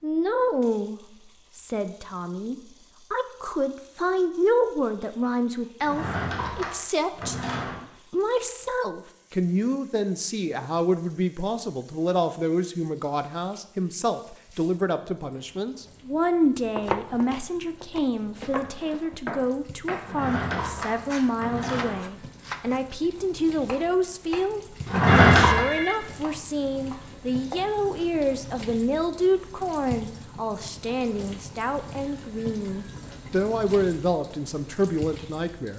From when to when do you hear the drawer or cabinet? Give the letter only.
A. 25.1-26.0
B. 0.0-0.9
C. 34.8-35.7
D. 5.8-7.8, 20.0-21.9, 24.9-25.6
D.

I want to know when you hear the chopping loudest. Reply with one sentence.
The volume of the chopping peaks at 17 seconds.